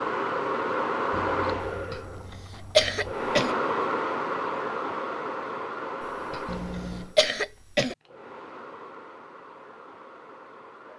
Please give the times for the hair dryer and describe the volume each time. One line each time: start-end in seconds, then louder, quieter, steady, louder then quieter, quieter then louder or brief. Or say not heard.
0.0-10.9 quieter.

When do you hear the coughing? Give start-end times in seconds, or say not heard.
1.9-3.5, 6.3-8.0.